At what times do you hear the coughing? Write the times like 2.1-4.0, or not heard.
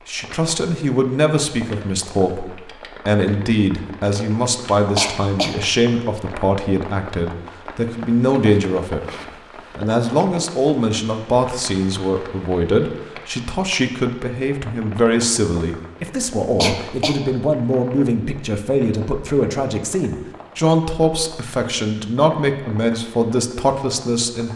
5.0-5.6, 16.6-17.2.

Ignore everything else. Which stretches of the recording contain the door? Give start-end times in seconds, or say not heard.
not heard.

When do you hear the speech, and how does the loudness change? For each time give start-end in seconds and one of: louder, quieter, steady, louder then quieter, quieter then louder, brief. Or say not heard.
0.1-9.2 steady
9.8-24.5 steady.